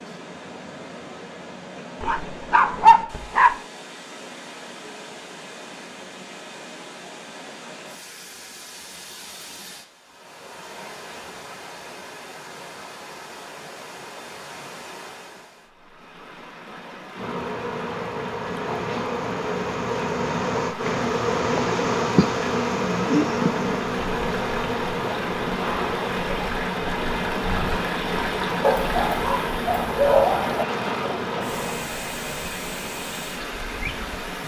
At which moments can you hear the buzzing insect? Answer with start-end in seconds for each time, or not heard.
17.1-34.4.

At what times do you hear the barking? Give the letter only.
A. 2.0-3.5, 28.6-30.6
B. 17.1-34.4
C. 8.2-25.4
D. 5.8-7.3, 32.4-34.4
A.